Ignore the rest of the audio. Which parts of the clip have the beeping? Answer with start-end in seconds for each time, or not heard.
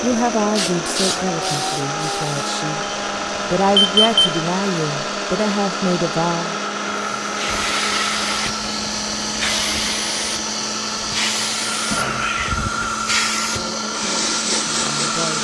2.8-4.4.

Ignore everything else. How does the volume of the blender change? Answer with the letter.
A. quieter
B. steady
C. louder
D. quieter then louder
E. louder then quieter
B.